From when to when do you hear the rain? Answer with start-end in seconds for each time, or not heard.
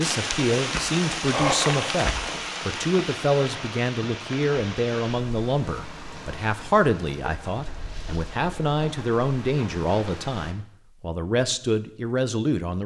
0.0-10.6.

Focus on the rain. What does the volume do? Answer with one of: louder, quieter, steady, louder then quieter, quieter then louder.
quieter.